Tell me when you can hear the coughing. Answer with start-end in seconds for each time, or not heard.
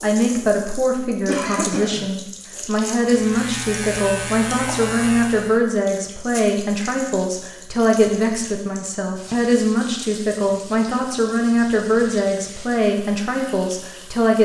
1.2-2.1.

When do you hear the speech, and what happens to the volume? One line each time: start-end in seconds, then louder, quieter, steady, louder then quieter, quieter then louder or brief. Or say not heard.
0.0-14.4 steady.